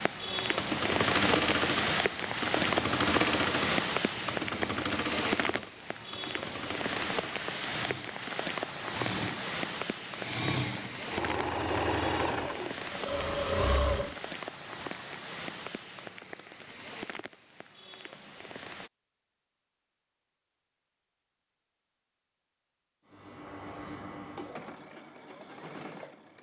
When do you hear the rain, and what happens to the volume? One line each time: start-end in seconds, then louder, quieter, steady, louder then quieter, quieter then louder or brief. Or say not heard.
0.0-18.9 quieter.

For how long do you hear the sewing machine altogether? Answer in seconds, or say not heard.
17 s.